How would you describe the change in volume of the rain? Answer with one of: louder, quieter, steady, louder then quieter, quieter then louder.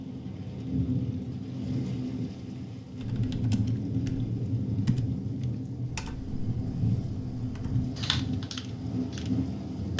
steady.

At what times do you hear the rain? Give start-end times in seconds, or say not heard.
0.0-9.9.